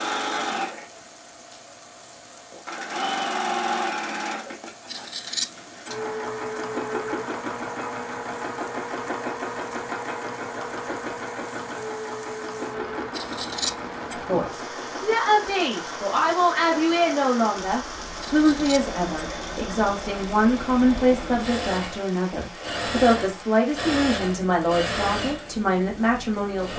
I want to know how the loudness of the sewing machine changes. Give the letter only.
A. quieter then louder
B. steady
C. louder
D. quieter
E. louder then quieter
A.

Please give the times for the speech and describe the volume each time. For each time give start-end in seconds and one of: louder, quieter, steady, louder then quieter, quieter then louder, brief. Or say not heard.
14.2-26.7 steady.